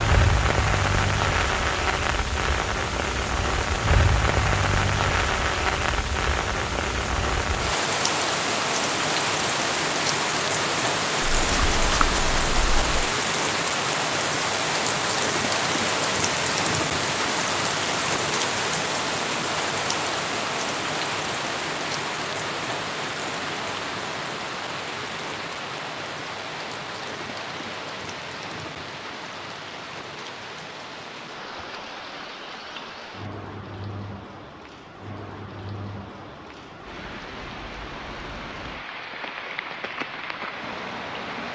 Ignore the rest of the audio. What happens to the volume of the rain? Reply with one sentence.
The volume of the rain goes down.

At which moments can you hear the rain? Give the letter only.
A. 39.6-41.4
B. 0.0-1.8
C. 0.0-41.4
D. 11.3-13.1
C.